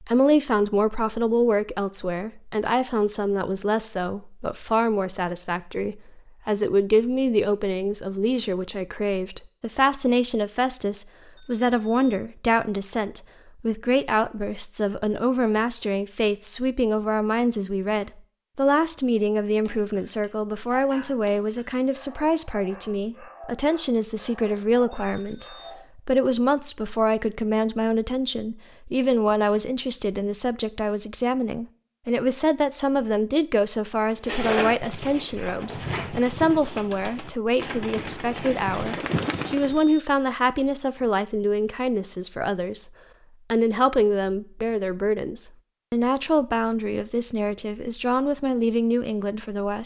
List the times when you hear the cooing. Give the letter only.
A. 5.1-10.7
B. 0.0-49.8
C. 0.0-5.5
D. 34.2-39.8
D.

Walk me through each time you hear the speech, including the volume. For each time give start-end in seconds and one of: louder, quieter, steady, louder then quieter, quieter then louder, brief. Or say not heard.
0.0-49.8 steady.